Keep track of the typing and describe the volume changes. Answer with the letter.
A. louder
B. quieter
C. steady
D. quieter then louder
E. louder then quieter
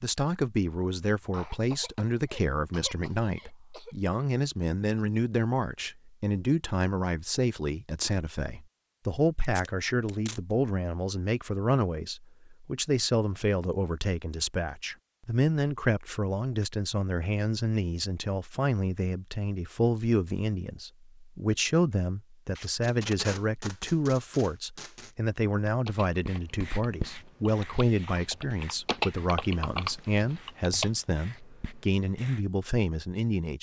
A.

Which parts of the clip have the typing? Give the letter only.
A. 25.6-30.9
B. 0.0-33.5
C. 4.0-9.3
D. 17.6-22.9
A.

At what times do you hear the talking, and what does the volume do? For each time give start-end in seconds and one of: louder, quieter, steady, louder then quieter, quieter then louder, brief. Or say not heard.
0.0-33.5 steady.